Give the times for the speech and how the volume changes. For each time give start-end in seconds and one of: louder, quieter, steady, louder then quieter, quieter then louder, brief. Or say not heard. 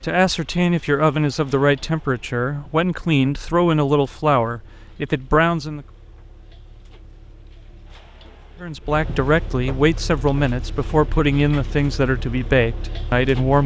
0.0-5.8 steady
8.6-13.6 steady.